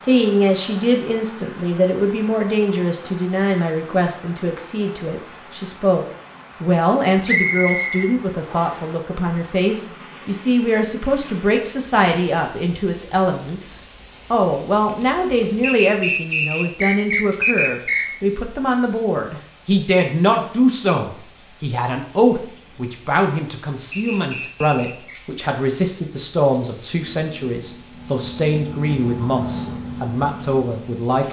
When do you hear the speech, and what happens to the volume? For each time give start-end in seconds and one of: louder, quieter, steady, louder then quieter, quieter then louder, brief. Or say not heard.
0.0-31.2 steady.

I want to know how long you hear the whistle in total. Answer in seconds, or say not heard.
5 s.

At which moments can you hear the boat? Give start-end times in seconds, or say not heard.
26.9-31.0.